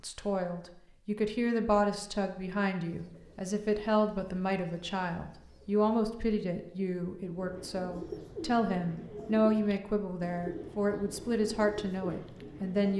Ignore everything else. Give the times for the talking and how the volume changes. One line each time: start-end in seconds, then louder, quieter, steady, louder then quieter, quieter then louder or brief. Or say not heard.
0.0-12.9 steady.